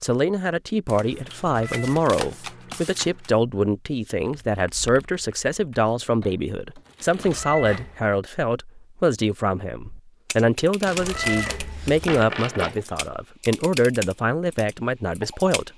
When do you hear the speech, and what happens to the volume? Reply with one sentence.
The speech can be heard from 0.0 to 15.7 s, at a steady volume.